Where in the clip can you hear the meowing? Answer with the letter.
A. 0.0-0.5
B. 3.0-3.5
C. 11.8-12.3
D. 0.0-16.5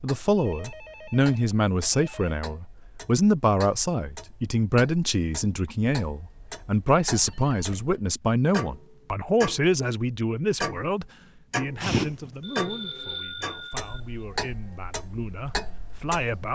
C.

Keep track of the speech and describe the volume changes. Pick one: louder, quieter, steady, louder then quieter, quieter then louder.
quieter.